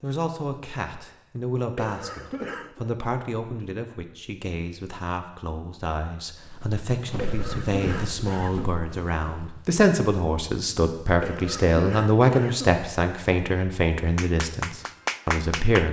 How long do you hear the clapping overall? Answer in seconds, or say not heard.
2 s.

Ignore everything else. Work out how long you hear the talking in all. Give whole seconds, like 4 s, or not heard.
16 s.